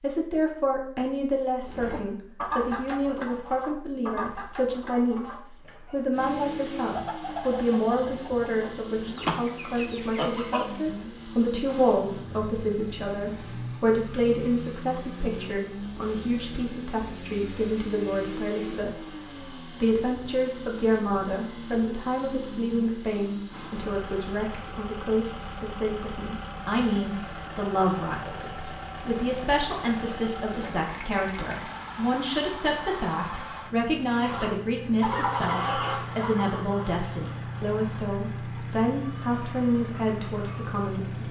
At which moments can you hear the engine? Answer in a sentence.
You can hear the engine from 6.1 to 41.2 s.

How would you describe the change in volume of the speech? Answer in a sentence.
The loudness of the speech stays about the same.